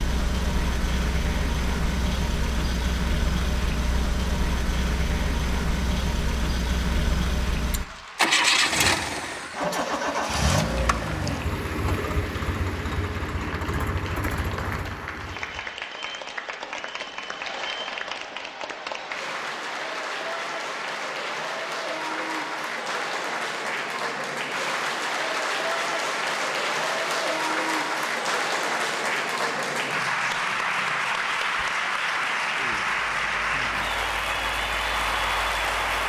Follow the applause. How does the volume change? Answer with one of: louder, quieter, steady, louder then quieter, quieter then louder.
louder.